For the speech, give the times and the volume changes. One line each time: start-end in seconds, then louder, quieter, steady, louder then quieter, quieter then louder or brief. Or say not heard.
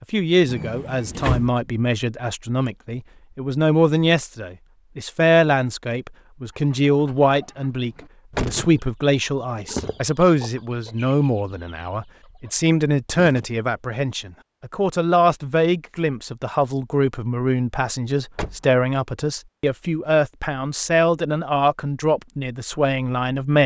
0.0-23.6 steady.